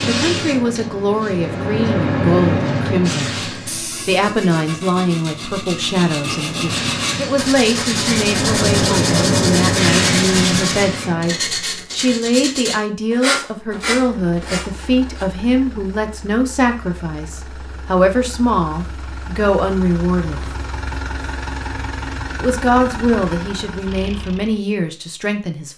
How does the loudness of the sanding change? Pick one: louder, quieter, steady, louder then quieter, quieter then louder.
louder.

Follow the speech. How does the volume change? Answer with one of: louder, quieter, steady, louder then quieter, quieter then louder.
steady.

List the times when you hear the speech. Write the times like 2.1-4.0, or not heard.
0.0-20.6, 22.4-25.7.